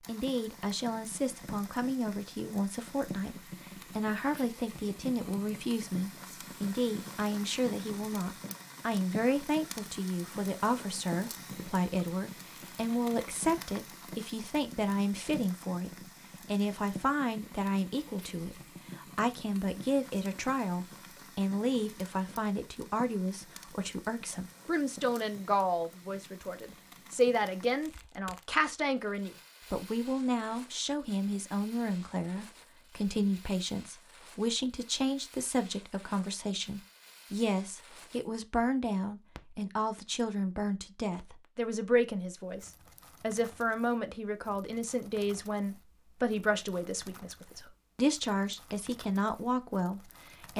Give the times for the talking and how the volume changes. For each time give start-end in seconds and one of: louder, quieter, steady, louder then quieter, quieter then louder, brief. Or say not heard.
0.1-50.5 steady.